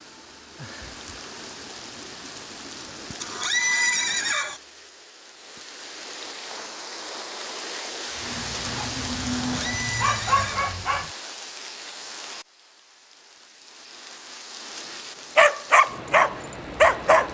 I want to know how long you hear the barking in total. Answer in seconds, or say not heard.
5 s.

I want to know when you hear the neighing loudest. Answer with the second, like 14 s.
4 s.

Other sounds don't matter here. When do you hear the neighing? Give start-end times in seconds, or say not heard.
3.2-4.6, 9.6-10.7.